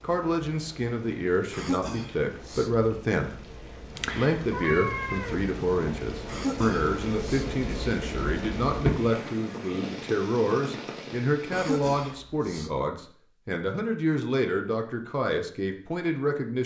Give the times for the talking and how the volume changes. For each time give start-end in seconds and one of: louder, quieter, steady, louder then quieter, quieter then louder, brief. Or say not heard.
0.0-16.6 steady.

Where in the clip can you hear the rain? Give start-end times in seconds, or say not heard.
0.0-12.2.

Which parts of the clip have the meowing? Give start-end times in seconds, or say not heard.
4.0-5.7.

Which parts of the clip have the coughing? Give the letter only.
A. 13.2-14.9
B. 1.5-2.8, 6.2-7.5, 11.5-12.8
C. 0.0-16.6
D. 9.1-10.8
B.